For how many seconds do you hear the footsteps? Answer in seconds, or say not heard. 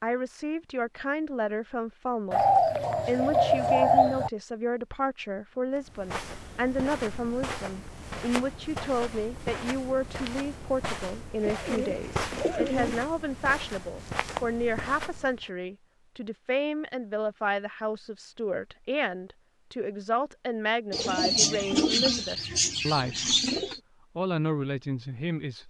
10 s.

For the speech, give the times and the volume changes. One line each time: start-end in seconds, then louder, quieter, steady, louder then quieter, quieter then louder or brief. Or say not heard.
0.0-2.5 brief
3.0-23.3 steady
24.1-25.6 brief.